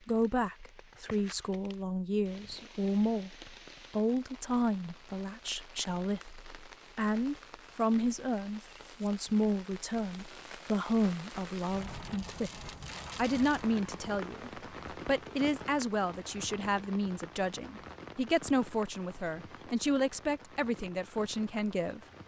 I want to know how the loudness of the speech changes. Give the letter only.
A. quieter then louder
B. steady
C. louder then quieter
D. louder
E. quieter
B.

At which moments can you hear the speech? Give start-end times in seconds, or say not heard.
0.1-22.0.